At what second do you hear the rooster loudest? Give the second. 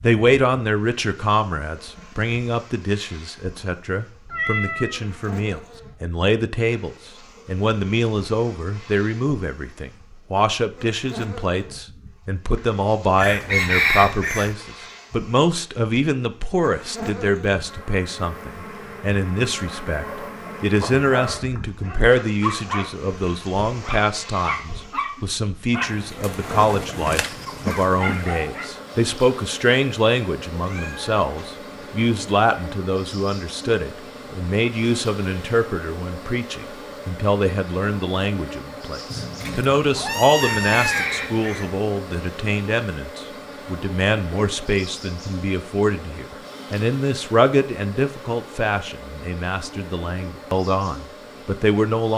14 s.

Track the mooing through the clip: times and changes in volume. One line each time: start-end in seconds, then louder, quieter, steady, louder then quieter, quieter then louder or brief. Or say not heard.
not heard.